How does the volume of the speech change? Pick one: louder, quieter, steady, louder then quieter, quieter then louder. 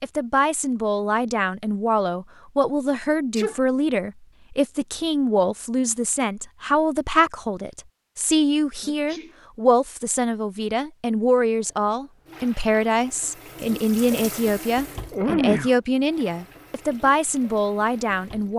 steady.